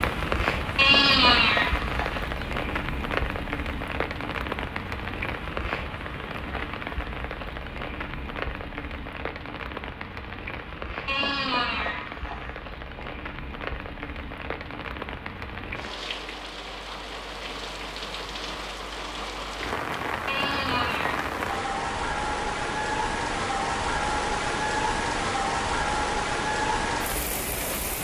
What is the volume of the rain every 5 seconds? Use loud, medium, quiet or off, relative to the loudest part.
loud, medium, medium, medium, loud, loud.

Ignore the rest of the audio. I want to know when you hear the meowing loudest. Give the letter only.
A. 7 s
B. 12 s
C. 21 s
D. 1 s
D.